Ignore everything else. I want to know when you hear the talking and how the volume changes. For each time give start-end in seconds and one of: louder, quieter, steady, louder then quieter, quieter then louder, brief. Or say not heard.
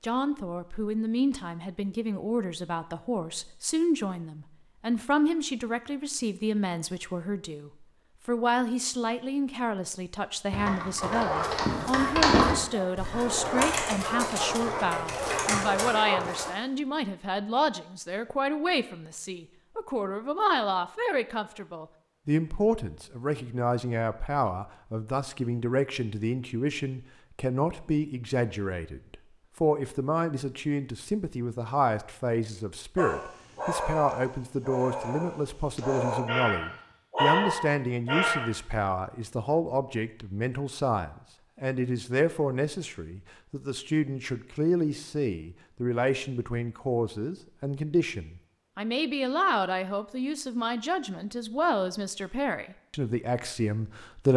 0.0-54.3 steady.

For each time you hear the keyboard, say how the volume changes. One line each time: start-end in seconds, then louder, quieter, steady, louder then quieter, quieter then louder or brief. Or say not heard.
10.5-15.9 louder then quieter.